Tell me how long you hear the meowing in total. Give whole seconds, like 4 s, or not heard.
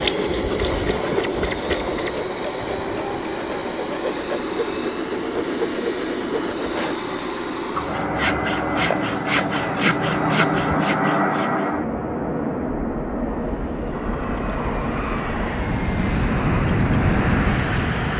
2 s.